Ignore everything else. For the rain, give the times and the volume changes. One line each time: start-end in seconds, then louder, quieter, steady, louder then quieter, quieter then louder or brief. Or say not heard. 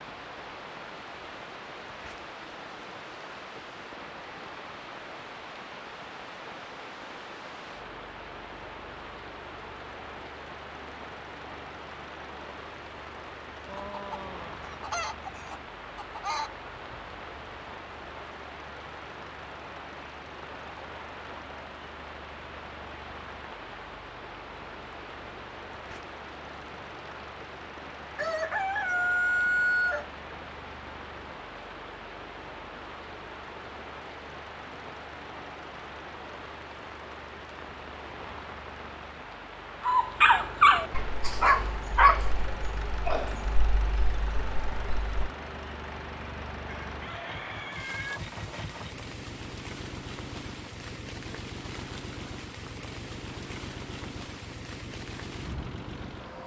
0.0-56.4 steady.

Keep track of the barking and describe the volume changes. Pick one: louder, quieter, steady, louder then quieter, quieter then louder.
quieter.